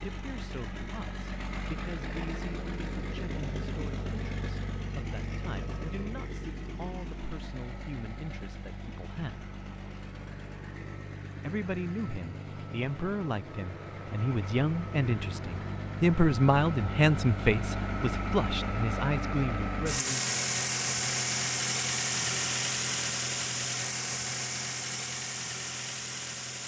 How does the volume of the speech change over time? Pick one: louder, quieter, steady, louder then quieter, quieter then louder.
louder.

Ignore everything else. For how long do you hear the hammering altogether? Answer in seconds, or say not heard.
not heard.